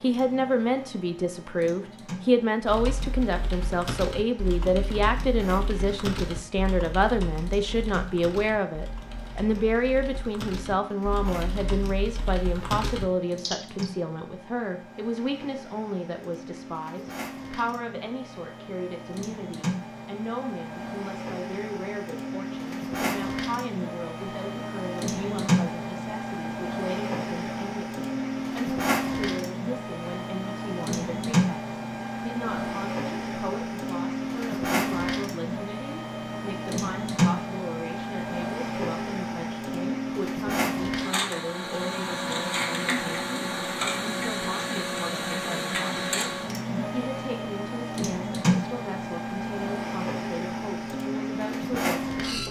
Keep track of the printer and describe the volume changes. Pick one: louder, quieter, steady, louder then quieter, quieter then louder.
louder.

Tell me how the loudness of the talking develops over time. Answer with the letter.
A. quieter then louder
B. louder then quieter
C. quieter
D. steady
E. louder
C.